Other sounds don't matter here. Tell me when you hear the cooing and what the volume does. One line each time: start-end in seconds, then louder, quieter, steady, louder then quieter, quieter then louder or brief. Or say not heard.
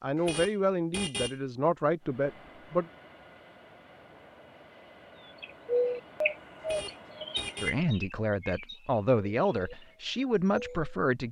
5.4-11.0 quieter.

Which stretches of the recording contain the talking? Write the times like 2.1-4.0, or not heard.
0.0-2.9, 7.6-11.2.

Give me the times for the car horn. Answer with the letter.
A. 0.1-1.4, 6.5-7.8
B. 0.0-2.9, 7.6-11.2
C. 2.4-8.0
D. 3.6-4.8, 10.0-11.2
A.